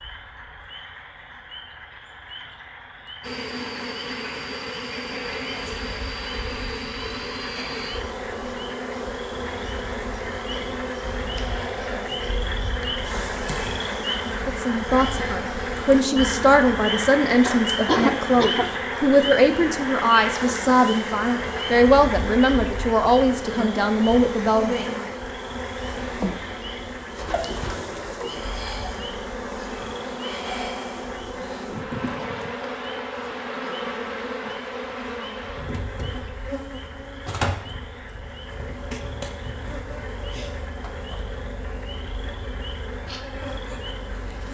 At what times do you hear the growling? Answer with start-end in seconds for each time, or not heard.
not heard.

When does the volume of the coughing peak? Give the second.
18 s.